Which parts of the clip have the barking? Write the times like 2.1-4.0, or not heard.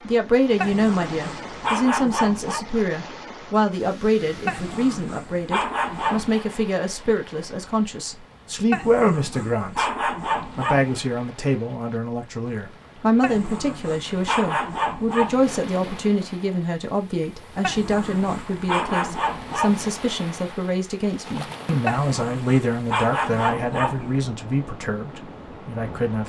0.6-2.6, 4.5-6.5, 8.7-11.0, 13.2-15.5, 17.6-19.9, 21.9-24.2.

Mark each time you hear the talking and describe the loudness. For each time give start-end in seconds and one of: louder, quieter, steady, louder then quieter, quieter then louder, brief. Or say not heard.
0.1-26.2 steady.